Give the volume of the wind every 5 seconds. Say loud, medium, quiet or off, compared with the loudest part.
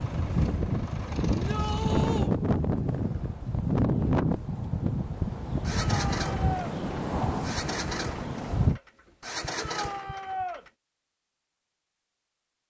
loud, loud, off.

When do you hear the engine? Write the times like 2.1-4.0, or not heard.
0.0-2.3, 5.6-10.7.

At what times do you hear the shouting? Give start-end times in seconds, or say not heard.
1.3-2.3, 5.7-6.7, 9.6-10.7.